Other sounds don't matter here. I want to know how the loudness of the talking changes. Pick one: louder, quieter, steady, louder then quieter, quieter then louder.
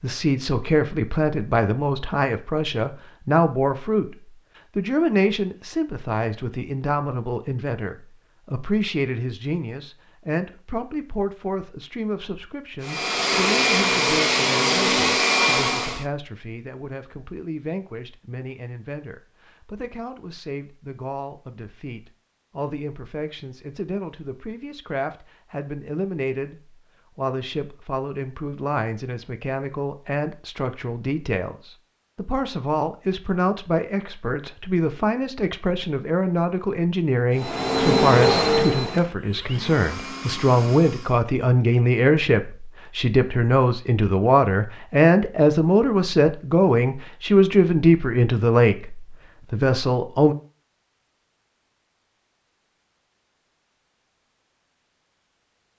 quieter then louder.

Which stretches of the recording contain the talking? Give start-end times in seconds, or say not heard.
0.0-4.2, 4.8-50.4.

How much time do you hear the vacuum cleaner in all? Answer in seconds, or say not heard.
7 s.